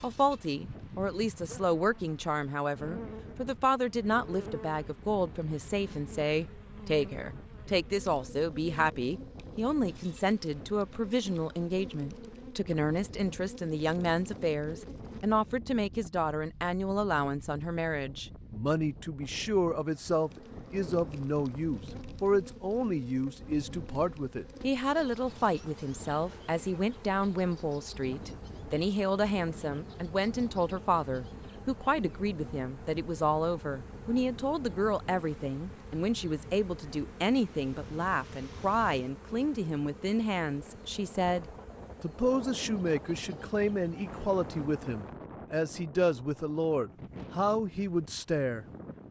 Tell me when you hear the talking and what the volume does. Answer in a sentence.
You can hear the talking from 0.0 to 49.0 s, at a steady volume.